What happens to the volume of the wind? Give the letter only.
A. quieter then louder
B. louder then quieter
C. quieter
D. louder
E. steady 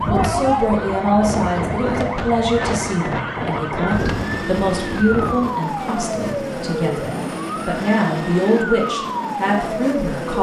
B.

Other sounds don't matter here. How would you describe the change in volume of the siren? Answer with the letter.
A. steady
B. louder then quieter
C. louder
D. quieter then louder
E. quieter
A.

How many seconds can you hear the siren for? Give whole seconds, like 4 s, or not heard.
10 s.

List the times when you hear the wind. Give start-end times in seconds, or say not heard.
0.0-5.5.